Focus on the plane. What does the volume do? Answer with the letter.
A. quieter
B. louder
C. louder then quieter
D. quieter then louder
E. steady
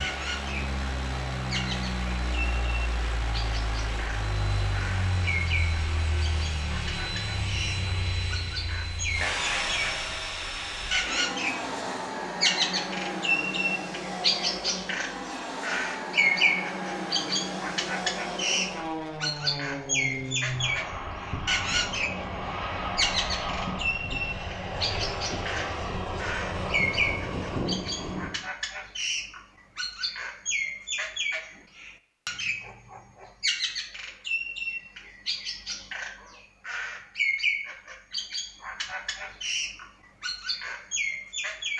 E.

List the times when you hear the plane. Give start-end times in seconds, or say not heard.
0.0-28.4.